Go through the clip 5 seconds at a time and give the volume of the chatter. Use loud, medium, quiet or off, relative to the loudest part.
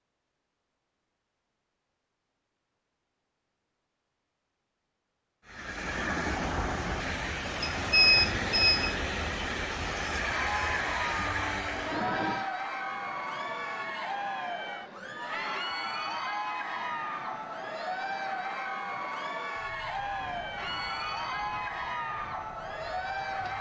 off, off, loud, loud, loud.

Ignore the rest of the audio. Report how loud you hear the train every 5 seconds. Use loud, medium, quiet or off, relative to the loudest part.
off, loud, loud, quiet, quiet.